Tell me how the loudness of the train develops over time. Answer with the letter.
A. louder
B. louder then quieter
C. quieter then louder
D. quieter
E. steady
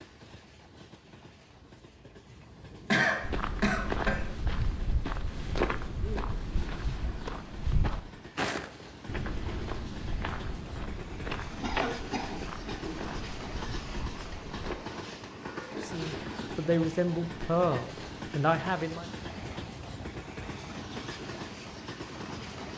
A.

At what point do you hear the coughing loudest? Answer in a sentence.
The volume of the coughing peaks at 3 seconds.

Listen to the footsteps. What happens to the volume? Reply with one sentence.
The volume of the footsteps goes down.